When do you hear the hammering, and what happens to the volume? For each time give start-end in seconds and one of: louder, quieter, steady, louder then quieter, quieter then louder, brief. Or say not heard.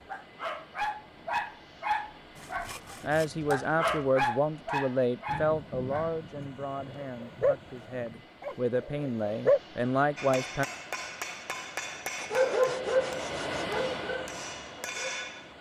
10.2-15.5 quieter then louder.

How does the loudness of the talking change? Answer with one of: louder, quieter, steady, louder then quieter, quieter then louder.
quieter then louder.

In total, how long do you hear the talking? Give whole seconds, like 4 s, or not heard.
8 s.